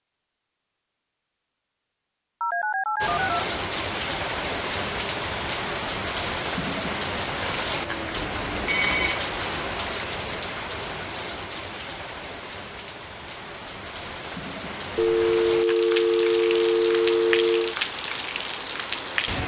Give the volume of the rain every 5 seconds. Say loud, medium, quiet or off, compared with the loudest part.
loud, loud, medium, loud.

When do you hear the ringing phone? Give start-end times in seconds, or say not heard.
2.4-3.5, 8.2-9.2, 14.9-17.8.